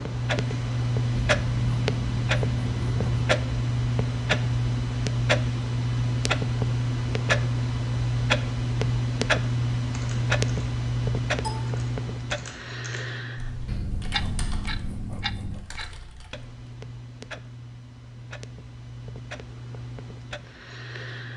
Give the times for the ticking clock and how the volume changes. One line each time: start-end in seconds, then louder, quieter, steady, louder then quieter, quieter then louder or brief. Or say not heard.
0.0-21.3 quieter.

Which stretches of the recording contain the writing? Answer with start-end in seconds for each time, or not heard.
1.1-3.2, 13.7-15.6.